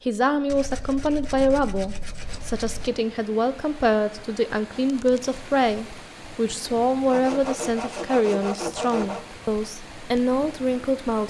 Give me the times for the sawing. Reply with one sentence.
You can hear the sawing from 0.5 to 2.9 s and from 7.0 to 9.2 s.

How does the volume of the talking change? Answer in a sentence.
The loudness of the talking stays about the same.